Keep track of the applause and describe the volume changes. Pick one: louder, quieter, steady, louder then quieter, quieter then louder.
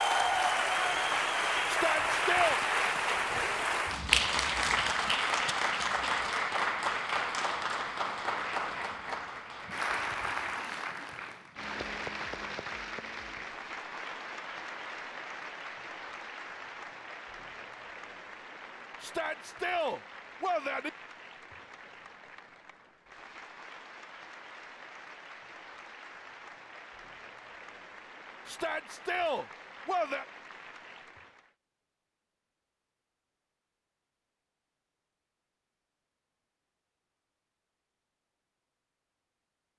quieter.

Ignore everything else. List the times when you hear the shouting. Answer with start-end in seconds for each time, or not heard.
1.6-2.6, 19.0-20.9, 28.4-30.2.